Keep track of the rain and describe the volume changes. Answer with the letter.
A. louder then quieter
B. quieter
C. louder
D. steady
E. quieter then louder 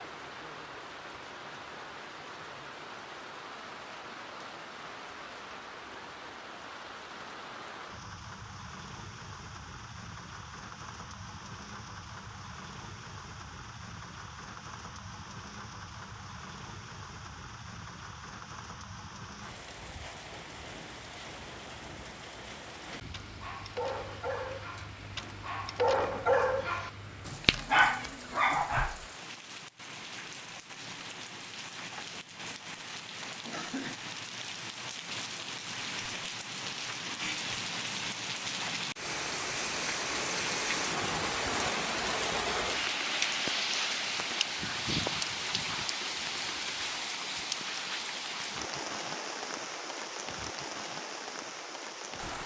C.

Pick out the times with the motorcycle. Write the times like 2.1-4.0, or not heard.
not heard.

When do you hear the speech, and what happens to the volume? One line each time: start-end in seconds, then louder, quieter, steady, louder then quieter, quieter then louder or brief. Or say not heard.
not heard.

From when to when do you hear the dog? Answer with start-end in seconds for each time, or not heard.
23.1-29.0.